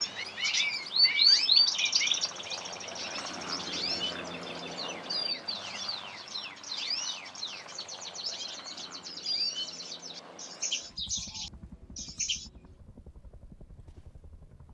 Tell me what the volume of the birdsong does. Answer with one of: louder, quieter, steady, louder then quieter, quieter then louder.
quieter.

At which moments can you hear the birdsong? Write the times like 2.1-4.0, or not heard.
0.0-12.5.